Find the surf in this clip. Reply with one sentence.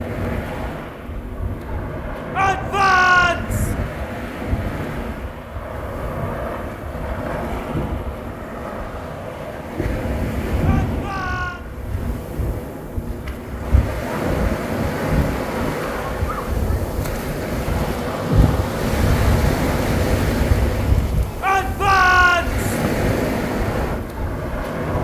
You can hear the surf from 0.0 to 24.9 s.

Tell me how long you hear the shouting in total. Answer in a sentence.
You can hear the shouting for 4 seconds altogether.